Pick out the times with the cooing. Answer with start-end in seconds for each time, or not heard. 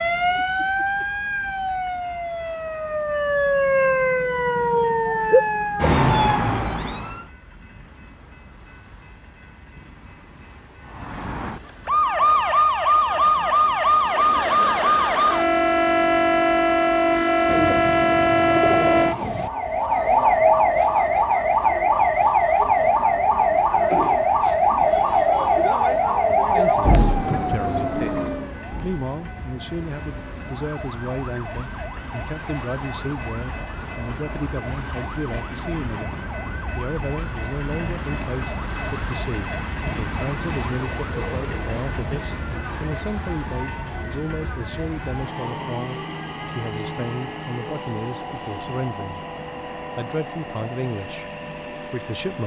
17.4-19.5, 40.5-42.8.